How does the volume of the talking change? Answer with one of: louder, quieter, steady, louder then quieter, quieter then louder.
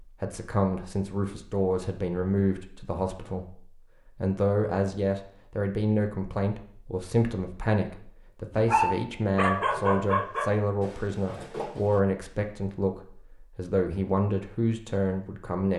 steady.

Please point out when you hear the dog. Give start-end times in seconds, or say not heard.
8.6-12.0.